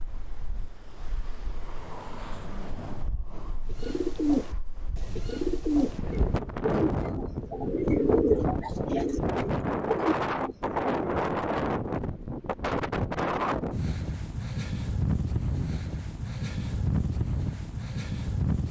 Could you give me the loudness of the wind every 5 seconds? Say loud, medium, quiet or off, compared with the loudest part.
quiet, loud, loud, loud.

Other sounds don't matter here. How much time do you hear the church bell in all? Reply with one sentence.
The church bell can't be heard in this clip.